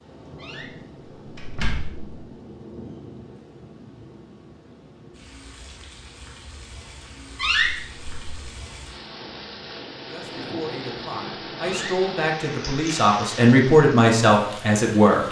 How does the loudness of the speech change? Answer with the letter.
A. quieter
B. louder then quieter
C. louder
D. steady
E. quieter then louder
C.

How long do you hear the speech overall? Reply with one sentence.
You can hear the speech for 5 seconds altogether.